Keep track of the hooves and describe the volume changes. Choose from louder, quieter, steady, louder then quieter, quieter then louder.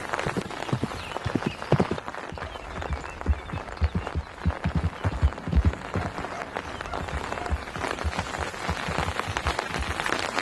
quieter.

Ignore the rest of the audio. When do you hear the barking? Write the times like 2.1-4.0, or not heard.
5.7-7.7.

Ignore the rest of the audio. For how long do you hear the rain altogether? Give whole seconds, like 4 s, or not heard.
10 s.